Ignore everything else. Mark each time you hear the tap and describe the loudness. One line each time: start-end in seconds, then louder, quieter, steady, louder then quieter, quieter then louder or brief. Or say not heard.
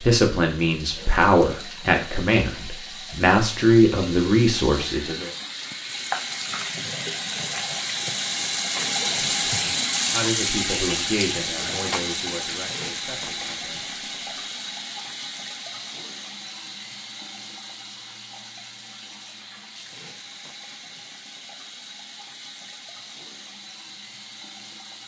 0.0-25.0 louder then quieter.